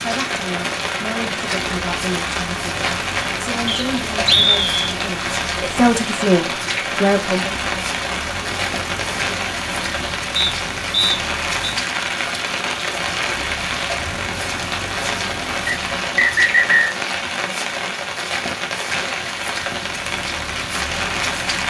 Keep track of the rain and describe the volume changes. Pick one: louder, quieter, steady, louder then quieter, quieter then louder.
steady.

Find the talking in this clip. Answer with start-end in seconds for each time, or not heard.
0.0-7.5.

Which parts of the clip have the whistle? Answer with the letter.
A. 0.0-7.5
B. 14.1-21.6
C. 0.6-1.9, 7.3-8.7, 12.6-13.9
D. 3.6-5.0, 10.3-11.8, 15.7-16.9
D.